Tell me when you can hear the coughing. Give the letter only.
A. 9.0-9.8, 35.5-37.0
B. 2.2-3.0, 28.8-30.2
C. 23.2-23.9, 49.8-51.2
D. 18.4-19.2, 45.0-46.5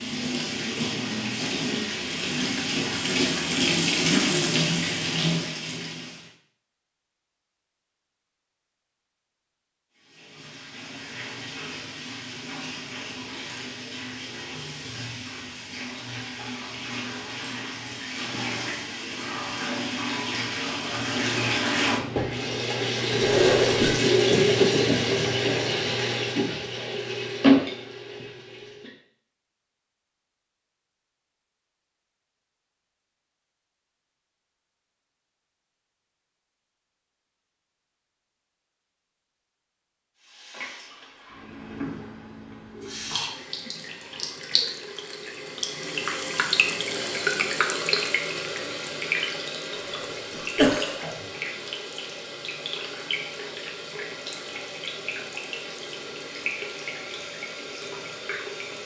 C.